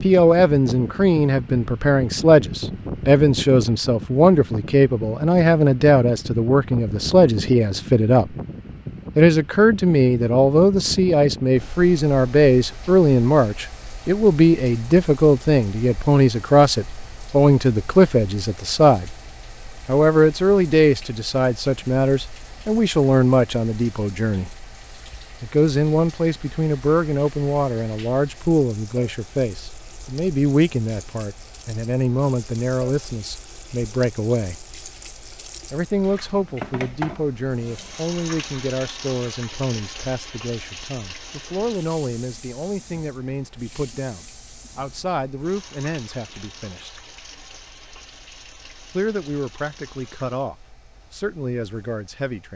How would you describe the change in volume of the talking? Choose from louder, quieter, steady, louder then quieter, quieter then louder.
quieter.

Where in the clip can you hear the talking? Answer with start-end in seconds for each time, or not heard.
0.0-8.3, 9.2-19.1, 19.9-24.5, 25.4-34.6, 35.7-47.0, 49.0-52.5.